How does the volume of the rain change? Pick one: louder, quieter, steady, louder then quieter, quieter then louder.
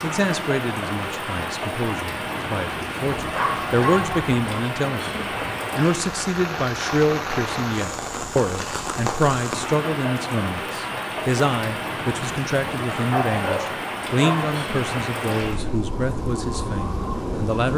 steady.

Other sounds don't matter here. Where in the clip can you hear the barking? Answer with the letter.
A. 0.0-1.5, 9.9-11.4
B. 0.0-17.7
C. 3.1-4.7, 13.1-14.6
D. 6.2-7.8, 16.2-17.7
C.